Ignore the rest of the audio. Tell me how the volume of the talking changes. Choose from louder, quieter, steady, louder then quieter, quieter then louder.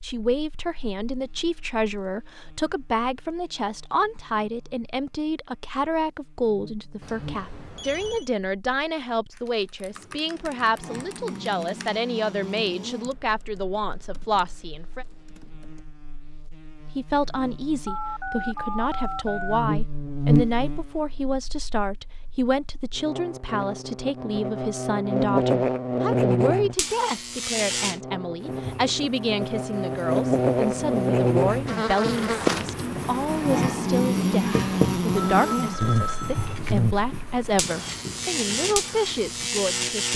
steady.